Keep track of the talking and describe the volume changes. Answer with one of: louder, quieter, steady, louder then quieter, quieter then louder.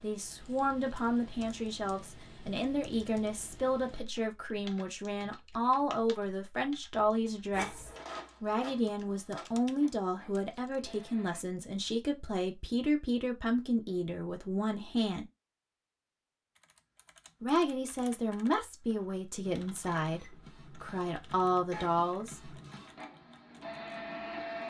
steady.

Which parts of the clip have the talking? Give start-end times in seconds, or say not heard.
0.0-15.3, 17.4-22.6.